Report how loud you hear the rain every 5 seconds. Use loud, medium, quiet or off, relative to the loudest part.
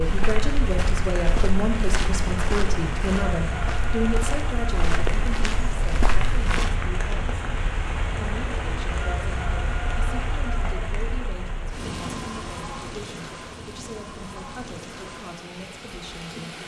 loud, loud, loud, medium.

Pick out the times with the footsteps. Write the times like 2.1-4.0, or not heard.
0.0-6.7.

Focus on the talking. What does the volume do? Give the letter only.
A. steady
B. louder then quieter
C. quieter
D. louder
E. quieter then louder
C.